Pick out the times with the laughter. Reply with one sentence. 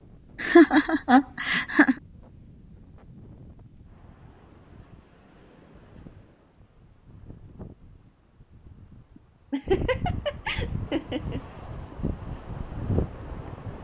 You can hear the laughter from 0.4 to 1.9 s and from 9.5 to 11.4 s.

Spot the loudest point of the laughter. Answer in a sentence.
The loudest moment of the laughter is at 1 second.